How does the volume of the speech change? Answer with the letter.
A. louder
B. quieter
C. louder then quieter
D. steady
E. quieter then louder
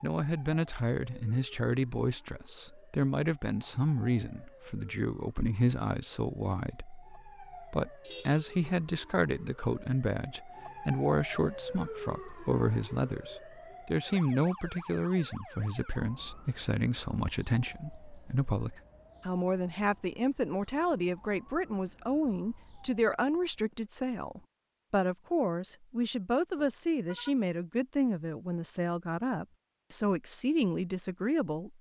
D.